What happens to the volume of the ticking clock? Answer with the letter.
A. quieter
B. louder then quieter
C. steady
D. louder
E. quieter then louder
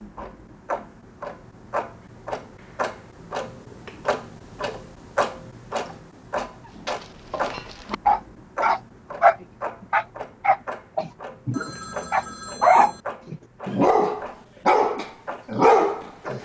A.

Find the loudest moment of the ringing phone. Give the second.
13 s.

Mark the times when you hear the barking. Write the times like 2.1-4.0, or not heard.
6.8-16.4.